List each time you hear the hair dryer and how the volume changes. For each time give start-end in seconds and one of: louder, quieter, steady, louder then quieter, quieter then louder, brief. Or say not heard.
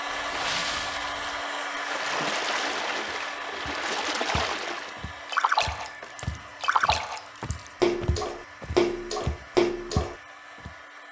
0.0-11.0 quieter.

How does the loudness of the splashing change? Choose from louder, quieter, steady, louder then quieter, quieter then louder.
louder.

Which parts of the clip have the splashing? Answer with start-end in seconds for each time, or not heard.
0.1-10.2.